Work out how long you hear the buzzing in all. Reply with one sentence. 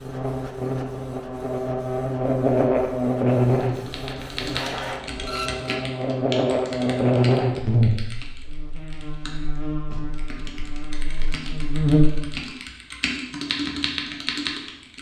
You can hear the buzzing for 12 seconds altogether.